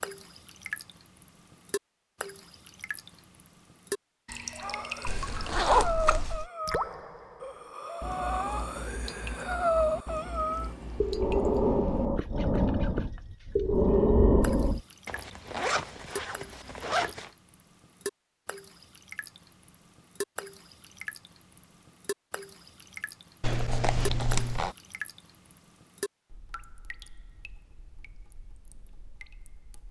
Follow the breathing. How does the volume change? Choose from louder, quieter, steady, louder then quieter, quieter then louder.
louder.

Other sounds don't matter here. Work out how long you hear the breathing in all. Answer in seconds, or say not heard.
10 s.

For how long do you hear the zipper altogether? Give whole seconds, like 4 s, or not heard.
5 s.